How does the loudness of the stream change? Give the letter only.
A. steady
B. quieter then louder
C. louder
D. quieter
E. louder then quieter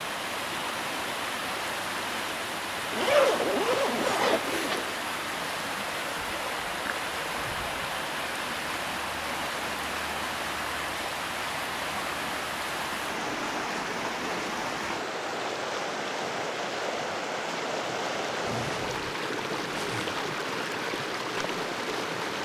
A.